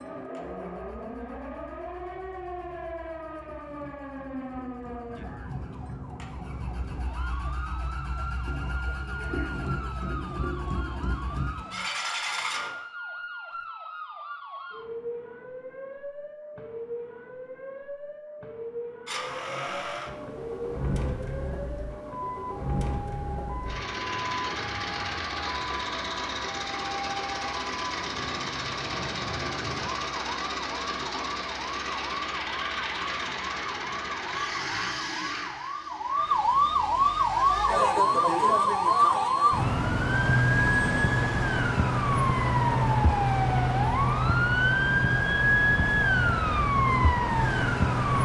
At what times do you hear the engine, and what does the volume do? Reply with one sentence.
The engine can be heard from 0.1 to 12.7 s, getting louder; and from 19.1 to 39.6 s, getting quieter.